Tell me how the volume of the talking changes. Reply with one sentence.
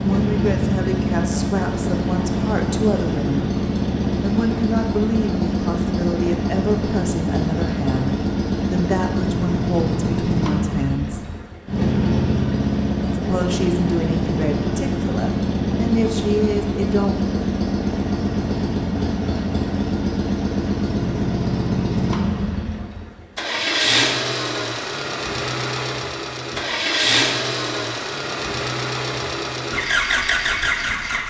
The volume of the talking stays about the same.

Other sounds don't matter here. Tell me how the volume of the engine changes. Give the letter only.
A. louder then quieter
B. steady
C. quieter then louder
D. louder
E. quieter
B.